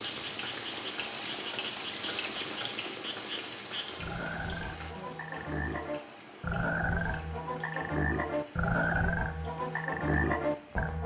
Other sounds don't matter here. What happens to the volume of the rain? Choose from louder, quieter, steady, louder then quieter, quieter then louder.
quieter.